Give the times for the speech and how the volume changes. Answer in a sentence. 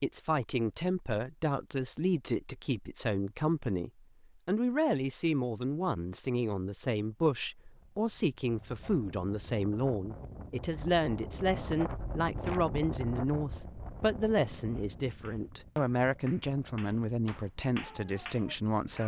The speech can be heard from 0.0 to 19.0 s, at a steady volume.